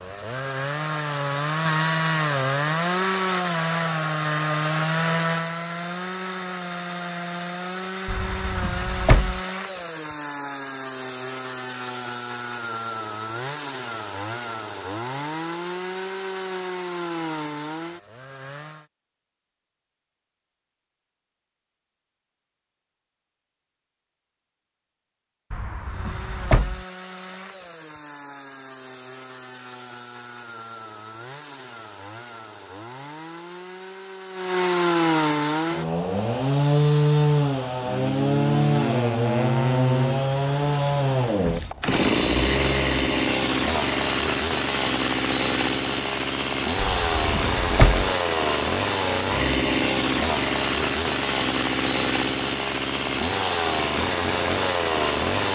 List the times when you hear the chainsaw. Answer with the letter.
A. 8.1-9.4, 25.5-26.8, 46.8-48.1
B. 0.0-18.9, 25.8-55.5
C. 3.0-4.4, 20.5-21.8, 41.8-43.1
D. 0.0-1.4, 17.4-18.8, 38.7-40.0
B.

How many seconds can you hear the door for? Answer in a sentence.
The door can be heard for 4 seconds in total.